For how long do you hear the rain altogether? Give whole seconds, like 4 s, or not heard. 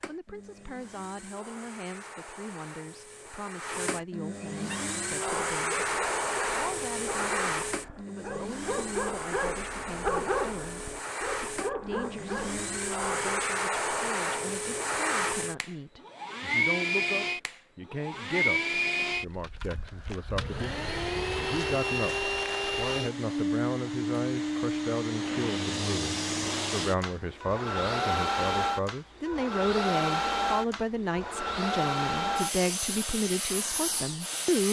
not heard.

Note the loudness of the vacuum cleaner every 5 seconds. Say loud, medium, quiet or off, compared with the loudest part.
medium, loud, loud, loud, loud, loud, loud.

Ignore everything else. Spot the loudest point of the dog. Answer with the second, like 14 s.
10 s.